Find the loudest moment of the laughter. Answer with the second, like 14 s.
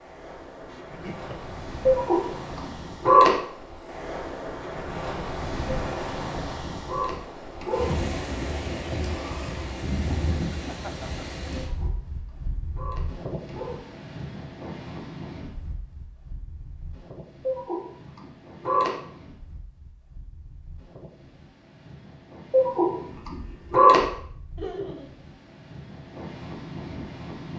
25 s.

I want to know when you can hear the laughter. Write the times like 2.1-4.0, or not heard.
0.7-1.6, 10.5-11.2, 24.6-25.1.